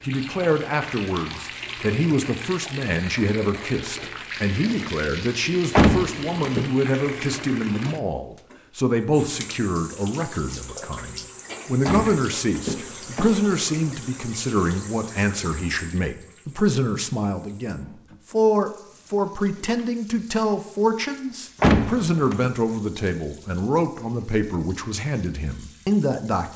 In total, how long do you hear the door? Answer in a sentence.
You can hear the door for 4 seconds altogether.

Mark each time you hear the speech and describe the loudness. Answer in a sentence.
The speech can be heard from 0.0 to 26.5 s, at a steady volume.